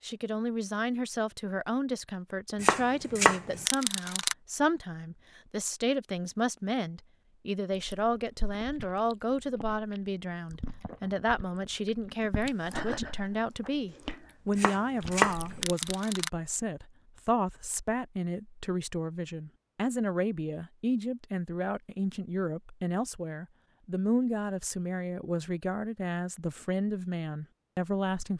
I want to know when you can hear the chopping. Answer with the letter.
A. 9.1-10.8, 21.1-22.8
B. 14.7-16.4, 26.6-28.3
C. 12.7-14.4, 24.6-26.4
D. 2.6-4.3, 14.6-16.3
D.